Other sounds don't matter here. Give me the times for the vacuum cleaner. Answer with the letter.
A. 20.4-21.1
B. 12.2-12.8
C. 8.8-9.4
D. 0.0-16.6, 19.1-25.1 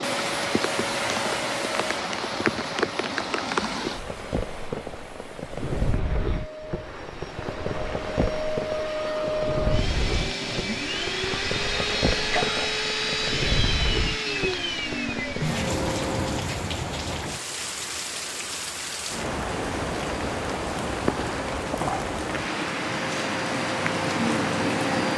D.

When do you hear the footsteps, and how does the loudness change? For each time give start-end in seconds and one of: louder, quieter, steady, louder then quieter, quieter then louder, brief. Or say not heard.
not heard.